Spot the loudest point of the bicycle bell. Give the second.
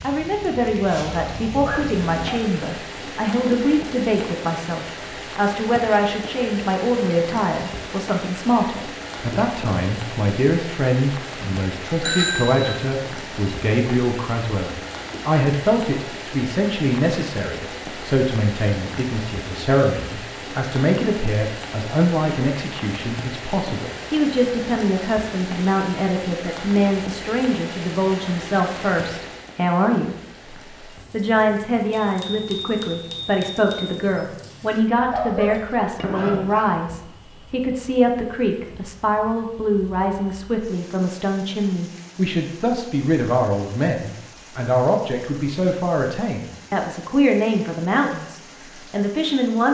12 s.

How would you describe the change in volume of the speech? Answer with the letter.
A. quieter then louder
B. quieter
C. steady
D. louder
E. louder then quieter
C.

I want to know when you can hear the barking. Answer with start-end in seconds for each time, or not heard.
1.1-2.5, 35.1-36.7.